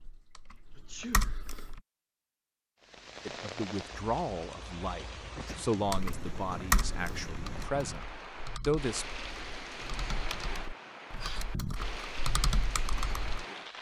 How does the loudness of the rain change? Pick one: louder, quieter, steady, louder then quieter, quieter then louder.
steady.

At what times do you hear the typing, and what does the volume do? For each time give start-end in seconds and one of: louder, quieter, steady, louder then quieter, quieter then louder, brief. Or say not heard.
0.0-1.8 brief
5.8-13.4 quieter then louder.